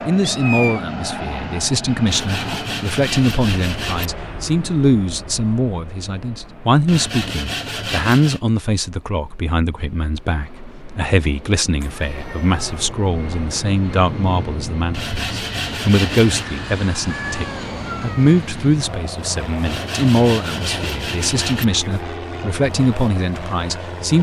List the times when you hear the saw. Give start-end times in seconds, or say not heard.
2.0-4.1, 6.8-8.4, 14.9-16.4, 19.6-21.6.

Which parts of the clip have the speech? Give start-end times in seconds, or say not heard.
0.1-24.1.